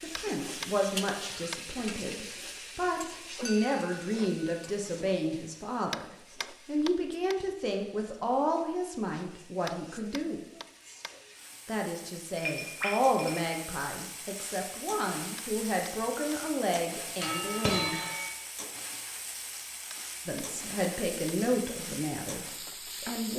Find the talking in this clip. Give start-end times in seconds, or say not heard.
0.0-10.4, 11.7-18.0, 20.2-23.3.